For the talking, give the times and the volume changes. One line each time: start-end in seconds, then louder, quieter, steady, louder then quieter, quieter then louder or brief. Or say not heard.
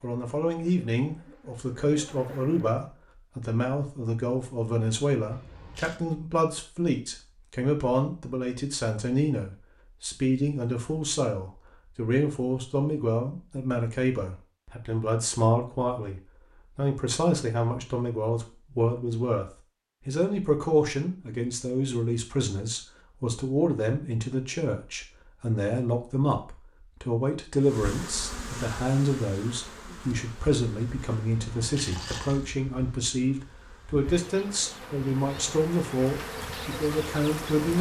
0.0-37.7 steady.